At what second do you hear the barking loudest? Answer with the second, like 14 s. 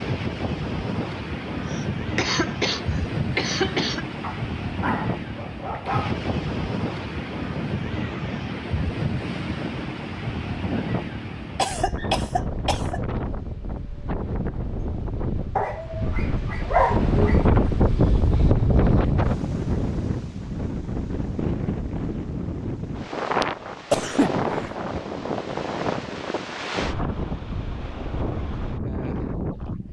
17 s.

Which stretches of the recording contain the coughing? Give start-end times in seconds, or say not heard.
1.6-4.0, 11.6-13.0, 23.9-24.7.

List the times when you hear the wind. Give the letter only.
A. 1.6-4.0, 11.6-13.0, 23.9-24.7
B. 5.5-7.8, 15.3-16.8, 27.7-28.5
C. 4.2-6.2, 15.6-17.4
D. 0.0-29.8
D.